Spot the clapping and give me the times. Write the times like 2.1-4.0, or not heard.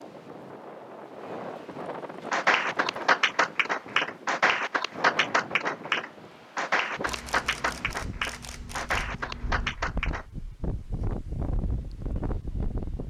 2.3-10.2.